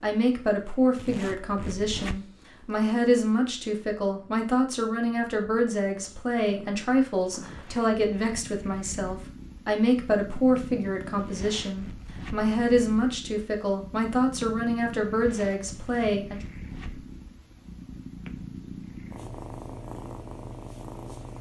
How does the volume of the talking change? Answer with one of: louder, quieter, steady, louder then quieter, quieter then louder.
steady.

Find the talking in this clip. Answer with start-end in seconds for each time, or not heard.
0.0-16.4.